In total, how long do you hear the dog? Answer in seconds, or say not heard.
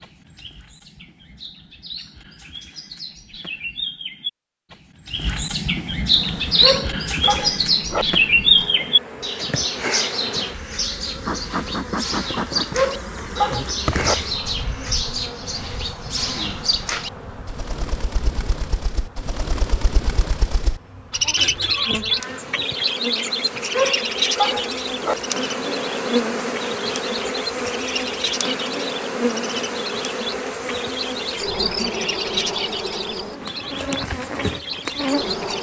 4 s.